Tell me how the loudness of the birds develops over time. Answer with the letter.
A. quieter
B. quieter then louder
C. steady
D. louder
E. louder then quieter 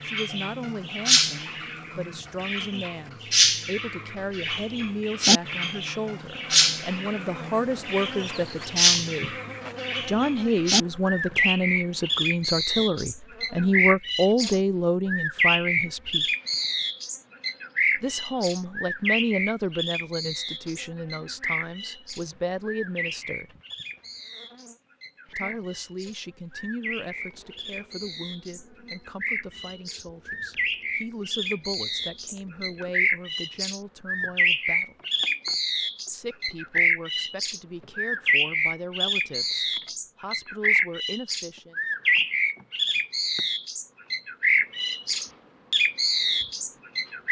B.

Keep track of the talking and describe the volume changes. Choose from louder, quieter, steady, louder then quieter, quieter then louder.
louder then quieter.